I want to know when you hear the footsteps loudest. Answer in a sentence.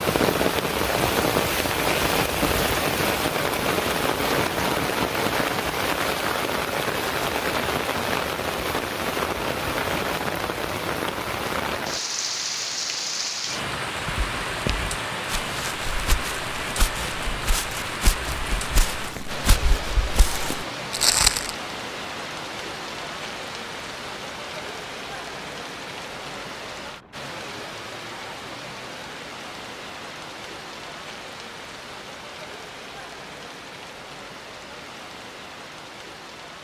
The loudest moment of the footsteps is at 21 seconds.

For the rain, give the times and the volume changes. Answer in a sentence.
You can hear the rain from 0.0 to 36.5 s, getting quieter.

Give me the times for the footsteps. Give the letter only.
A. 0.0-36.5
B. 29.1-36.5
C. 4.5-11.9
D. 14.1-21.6
D.